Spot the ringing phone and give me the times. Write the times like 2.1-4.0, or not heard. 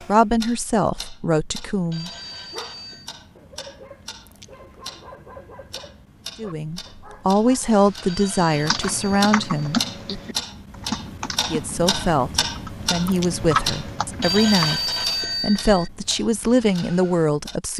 1.9-3.1, 8.1-9.8, 14.2-15.9.